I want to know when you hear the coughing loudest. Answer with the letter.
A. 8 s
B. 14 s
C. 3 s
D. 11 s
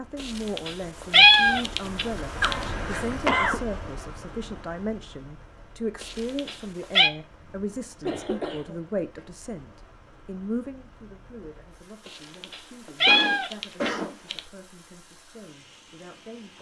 C.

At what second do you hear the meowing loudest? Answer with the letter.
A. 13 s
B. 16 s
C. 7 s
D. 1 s
D.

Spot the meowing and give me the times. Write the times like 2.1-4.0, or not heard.
0.2-2.5, 6.0-7.1, 12.1-14.4.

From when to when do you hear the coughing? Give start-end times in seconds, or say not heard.
2.4-3.6, 7.5-9.2, 13.1-14.2.